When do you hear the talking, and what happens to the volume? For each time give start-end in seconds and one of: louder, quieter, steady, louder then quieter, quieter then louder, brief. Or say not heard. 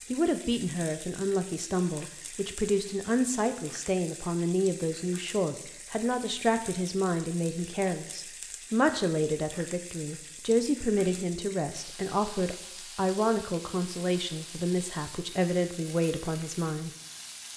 0.1-16.9 steady.